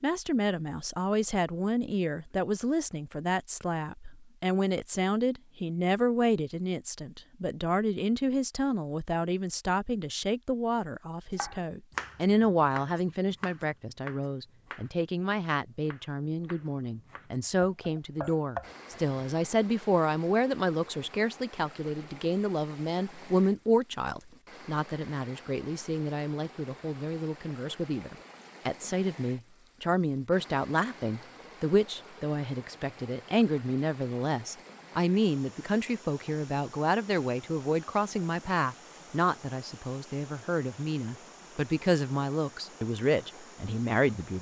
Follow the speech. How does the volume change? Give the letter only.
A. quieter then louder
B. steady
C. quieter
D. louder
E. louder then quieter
B.